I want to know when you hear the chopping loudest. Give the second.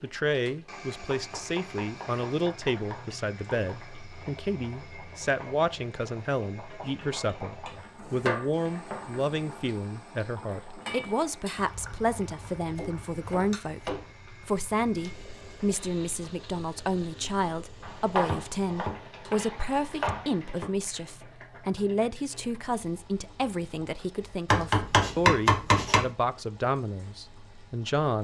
25 s.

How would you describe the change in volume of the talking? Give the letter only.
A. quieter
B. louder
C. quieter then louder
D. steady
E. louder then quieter
D.